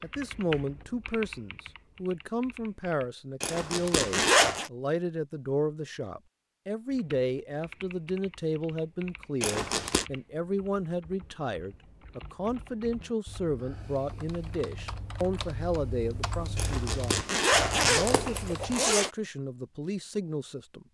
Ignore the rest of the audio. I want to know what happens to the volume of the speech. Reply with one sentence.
The volume of the speech stays about the same.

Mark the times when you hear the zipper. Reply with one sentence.
You can hear the zipper from 3.4 to 4.7 s, from 9.4 to 10.1 s and from 16.6 to 19.1 s.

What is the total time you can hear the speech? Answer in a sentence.
The speech can be heard for 21 seconds in total.